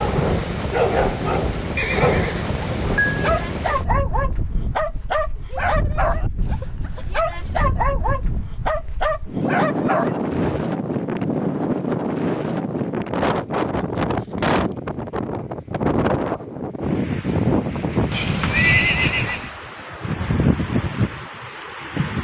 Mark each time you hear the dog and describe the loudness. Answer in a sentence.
The dog can be heard from 0.0 to 10.7 s, at a steady volume.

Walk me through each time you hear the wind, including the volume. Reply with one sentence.
You can hear the wind from 0.0 to 22.1 s, getting quieter then louder.